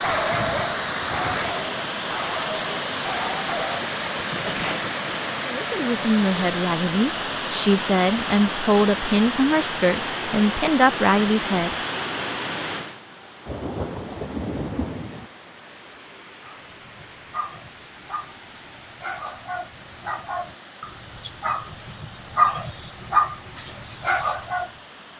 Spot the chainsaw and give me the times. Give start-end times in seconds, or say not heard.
not heard.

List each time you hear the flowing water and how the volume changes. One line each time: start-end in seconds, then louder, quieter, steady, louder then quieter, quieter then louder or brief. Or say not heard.
0.0-25.1 quieter.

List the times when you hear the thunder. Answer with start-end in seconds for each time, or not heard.
0.1-1.6, 13.4-15.3.